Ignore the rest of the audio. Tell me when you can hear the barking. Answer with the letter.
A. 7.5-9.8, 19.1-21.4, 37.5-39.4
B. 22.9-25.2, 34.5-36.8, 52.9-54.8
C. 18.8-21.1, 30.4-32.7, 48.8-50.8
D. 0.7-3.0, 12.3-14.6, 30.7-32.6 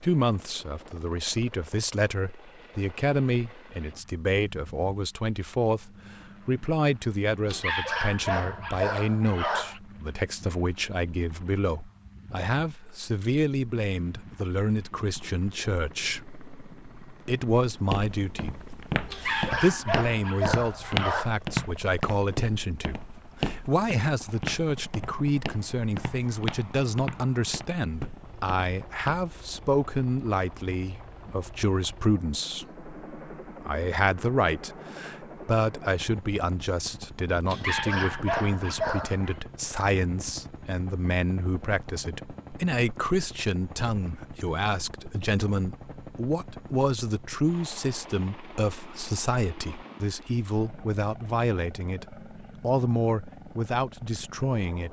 A.